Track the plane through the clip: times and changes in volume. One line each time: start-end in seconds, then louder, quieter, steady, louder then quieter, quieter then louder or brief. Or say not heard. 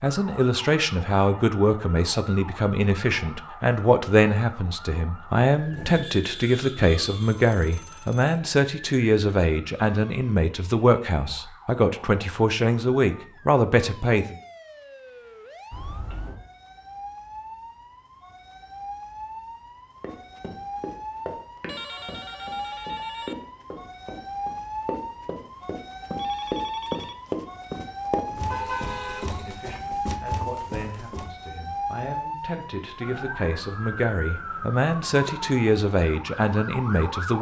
not heard.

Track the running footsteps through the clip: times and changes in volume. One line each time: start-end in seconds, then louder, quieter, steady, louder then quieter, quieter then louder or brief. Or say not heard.
20.0-31.4 louder then quieter.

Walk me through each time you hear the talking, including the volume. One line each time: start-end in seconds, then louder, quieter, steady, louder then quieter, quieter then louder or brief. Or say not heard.
0.0-14.3 steady
29.2-37.3 louder.